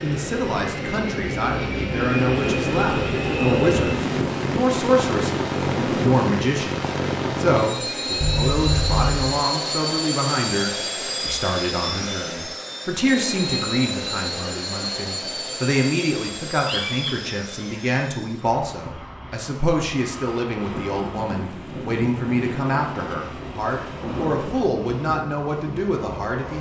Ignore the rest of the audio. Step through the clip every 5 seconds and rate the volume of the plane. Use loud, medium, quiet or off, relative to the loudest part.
loud, loud, loud, medium, quiet, medium.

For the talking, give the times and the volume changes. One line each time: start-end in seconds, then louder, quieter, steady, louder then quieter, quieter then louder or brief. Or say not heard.
0.0-26.5 steady.